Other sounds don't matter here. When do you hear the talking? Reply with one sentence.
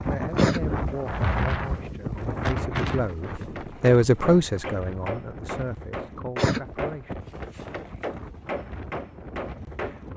The talking can be heard from 0.1 to 7.2 s.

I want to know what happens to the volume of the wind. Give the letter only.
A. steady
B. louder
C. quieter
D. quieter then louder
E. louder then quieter
C.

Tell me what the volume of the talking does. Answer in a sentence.
The volume of the talking goes up, then down.